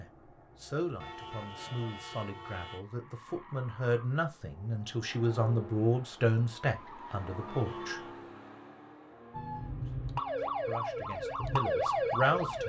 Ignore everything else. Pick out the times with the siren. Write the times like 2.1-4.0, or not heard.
9.3-12.6.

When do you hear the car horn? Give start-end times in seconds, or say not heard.
1.0-2.9, 7.5-8.2.